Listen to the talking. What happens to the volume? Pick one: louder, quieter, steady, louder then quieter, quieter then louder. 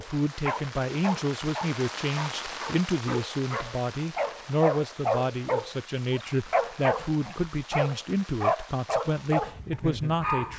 steady.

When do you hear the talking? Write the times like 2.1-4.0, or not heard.
0.0-10.5.